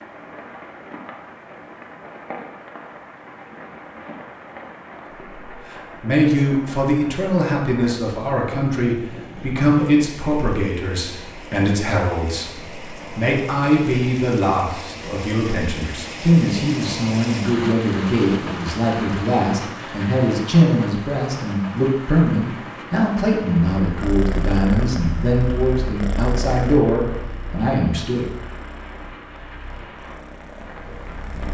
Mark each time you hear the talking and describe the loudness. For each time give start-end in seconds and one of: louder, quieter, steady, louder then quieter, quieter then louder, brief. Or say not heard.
5.5-28.2 steady.